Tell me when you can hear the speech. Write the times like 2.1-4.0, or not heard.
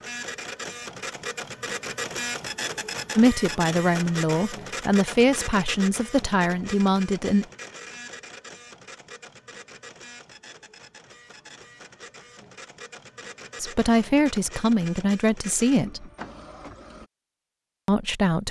3.1-7.5, 13.6-16.1, 17.9-18.4.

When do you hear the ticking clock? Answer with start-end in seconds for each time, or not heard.
not heard.